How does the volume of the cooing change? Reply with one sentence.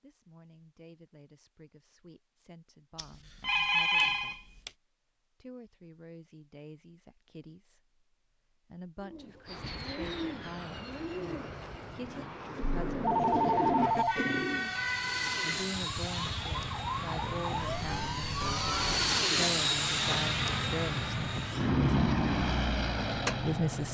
The volume of the cooing goes down, then up.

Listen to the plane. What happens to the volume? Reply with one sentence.
The volume of the plane goes up.